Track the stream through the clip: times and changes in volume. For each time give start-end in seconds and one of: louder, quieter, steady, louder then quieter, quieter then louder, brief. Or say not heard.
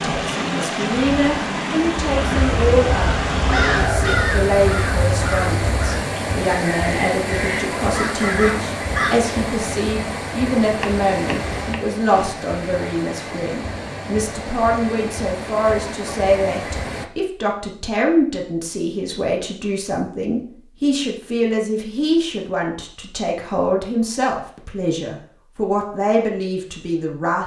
0.0-17.1 quieter.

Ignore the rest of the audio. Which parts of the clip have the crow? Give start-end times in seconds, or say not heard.
2.0-9.2.